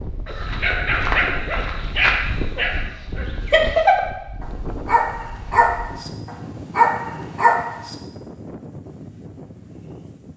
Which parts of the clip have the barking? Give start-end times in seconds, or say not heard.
0.2-8.0.